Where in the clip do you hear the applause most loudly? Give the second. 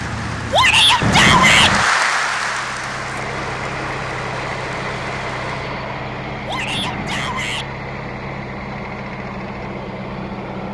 2 s.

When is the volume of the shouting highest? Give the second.
1 s.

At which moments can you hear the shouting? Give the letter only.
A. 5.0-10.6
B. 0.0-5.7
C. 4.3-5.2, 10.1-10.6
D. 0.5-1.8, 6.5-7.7
D.